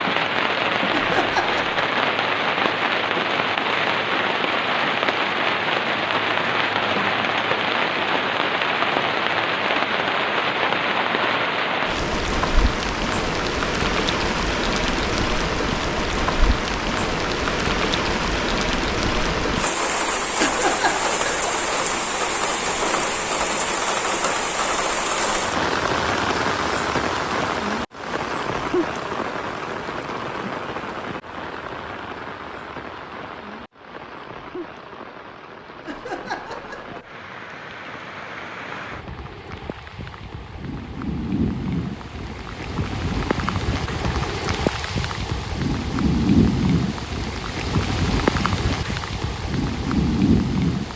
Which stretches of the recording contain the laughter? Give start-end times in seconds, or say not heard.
0.9-1.9, 20.4-21.4, 35.8-37.1.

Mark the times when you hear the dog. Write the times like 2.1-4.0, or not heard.
not heard.